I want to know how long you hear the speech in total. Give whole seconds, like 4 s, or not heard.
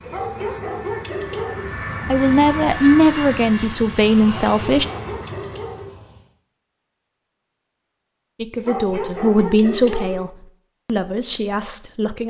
7 s.